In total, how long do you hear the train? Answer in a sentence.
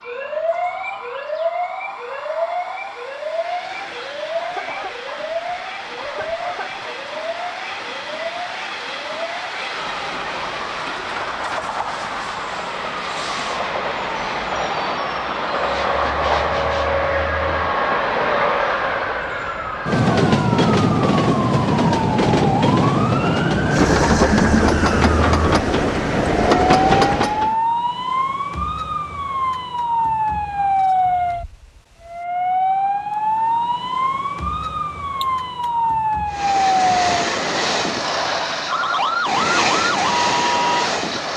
You can hear the train for 33 seconds altogether.